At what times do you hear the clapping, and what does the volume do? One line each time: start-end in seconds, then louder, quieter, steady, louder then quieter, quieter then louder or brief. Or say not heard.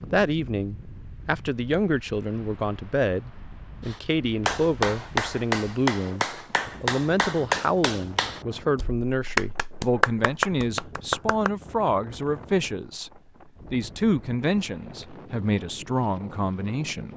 3.9-11.5 steady.